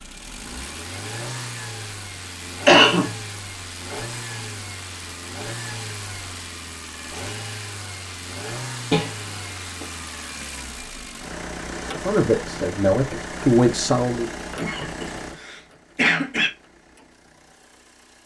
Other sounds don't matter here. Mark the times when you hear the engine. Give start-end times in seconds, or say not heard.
0.0-18.2.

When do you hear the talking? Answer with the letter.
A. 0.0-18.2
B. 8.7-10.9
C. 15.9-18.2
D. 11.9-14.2
D.